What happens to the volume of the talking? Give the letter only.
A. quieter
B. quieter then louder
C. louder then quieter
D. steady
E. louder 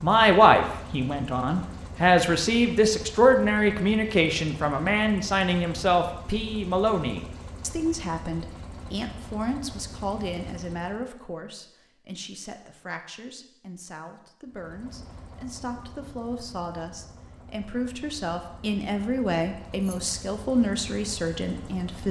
B.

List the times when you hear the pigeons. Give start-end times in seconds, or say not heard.
not heard.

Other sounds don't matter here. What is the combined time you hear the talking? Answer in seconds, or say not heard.
22 s.